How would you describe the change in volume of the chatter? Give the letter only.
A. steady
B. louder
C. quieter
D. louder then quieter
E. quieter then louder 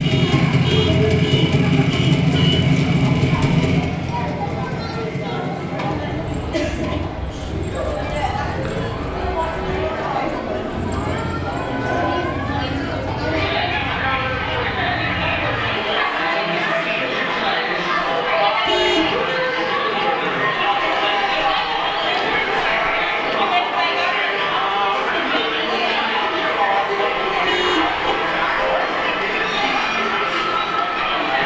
B.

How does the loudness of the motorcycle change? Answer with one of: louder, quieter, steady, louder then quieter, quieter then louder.
quieter.